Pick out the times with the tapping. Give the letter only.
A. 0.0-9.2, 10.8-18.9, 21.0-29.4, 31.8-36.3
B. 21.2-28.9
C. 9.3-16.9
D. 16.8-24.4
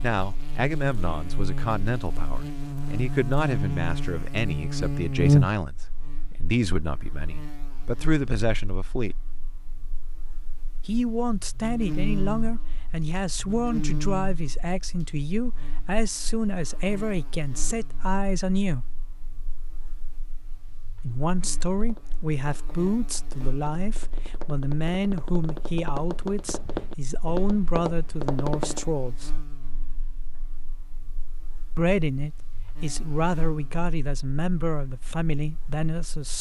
B.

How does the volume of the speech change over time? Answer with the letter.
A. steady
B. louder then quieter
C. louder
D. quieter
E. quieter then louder
A.